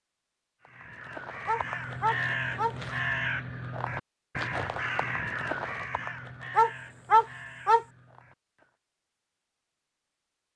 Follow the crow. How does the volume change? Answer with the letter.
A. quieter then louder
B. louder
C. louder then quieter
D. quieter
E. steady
D.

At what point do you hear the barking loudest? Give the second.
7 s.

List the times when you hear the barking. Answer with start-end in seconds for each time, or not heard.
1.4-2.8, 6.5-7.8.